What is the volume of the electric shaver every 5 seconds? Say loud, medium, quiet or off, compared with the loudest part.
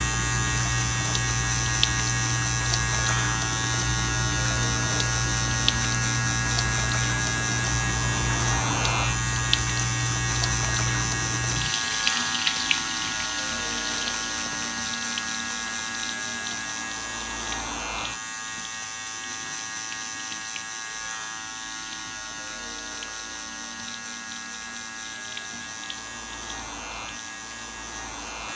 loud, loud, loud, medium, medium, medium.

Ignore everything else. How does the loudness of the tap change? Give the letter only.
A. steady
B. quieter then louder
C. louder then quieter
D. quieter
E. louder
D.